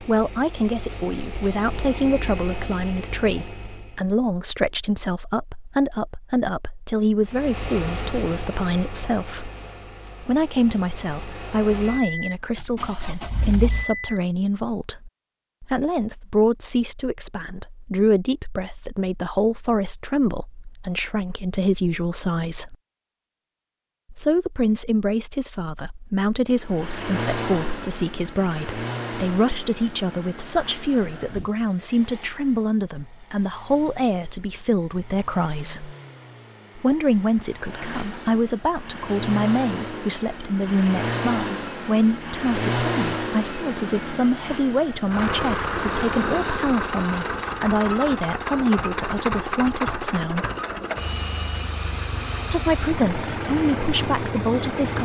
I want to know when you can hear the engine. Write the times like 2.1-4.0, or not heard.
0.0-4.0, 7.2-14.2, 26.6-55.0.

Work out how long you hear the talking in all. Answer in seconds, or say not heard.
50 s.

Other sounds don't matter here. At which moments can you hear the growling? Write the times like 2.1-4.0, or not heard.
not heard.